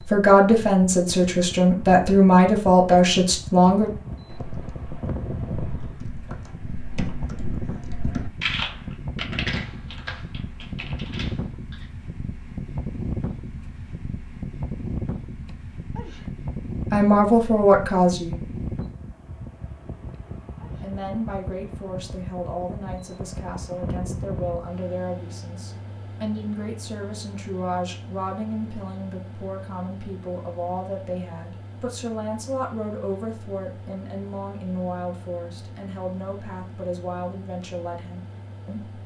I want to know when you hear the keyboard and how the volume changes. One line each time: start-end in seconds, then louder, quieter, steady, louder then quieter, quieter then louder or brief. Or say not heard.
3.8-11.9 louder then quieter.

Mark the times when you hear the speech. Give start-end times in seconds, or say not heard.
0.1-3.9, 16.9-18.4, 20.8-39.0.